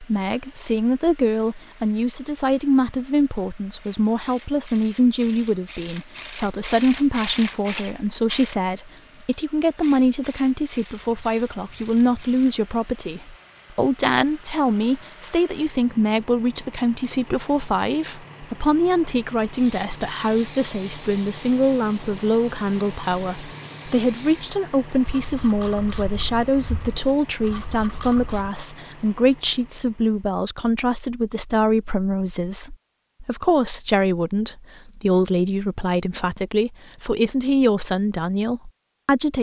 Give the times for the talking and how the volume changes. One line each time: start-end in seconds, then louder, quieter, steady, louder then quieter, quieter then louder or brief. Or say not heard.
0.0-39.3 steady.